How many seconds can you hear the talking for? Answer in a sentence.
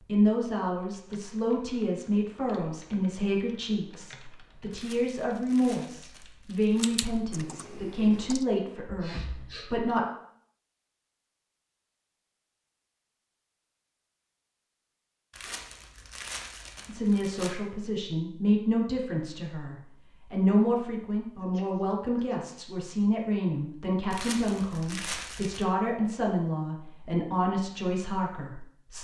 The talking can be heard for 22 seconds in total.